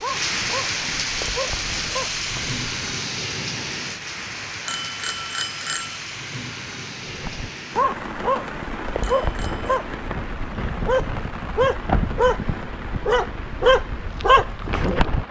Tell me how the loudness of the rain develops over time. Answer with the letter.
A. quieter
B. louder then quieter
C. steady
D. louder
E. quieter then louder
A.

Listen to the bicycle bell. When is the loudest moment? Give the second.
6 s.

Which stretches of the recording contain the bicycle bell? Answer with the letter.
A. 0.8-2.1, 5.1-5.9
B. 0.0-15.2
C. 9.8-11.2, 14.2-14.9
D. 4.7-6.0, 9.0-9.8
D.